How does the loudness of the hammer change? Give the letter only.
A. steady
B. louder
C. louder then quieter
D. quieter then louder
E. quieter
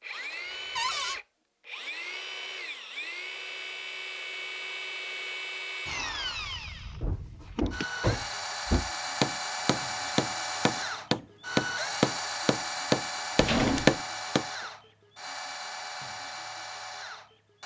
B.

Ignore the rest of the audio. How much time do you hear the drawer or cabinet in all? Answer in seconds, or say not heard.
3 s.